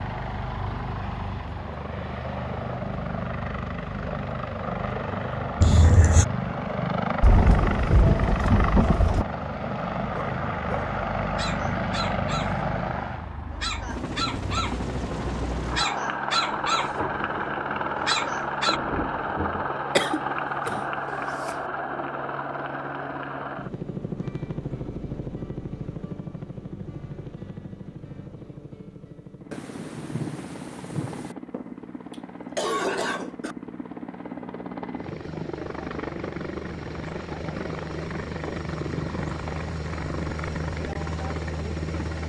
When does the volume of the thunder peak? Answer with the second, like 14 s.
8 s.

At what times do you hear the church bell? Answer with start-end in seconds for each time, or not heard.
not heard.